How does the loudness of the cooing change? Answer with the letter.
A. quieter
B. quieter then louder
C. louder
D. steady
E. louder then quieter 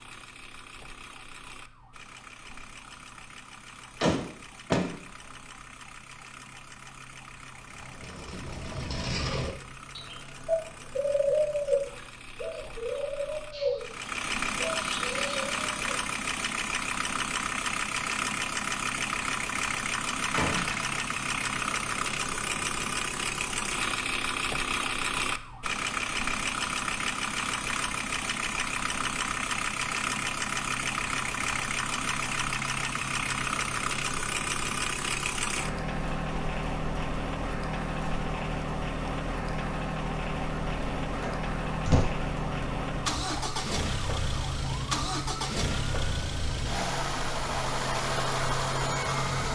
E.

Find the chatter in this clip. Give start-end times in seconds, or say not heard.
not heard.